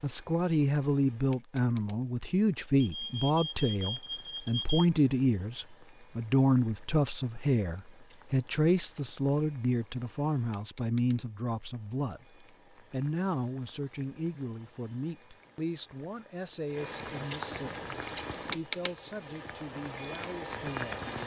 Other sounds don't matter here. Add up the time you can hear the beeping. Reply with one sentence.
You can hear the beeping for 2 seconds altogether.